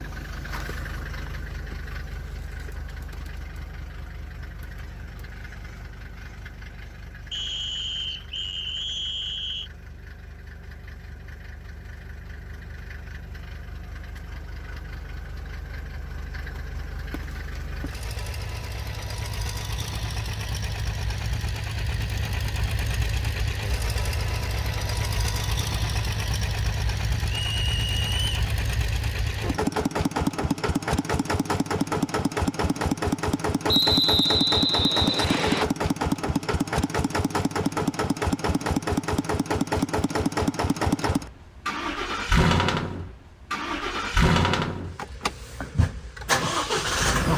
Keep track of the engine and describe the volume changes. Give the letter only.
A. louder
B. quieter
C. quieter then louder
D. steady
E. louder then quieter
A.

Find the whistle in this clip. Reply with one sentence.
You can hear the whistle from 7.3 to 9.7 s, from 27.2 to 28.4 s and from 33.6 to 35.6 s.